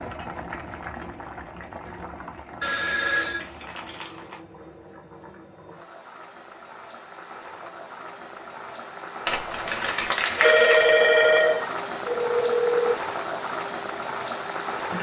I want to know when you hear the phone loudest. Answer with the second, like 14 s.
11 s.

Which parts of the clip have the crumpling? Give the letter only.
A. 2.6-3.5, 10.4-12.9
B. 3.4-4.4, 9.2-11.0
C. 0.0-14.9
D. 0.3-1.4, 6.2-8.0
B.